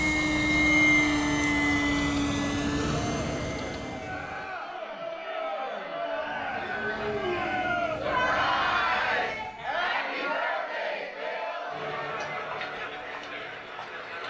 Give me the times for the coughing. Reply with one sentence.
You can't hear the coughing here.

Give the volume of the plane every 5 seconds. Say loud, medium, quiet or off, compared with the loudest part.
loud, quiet, off.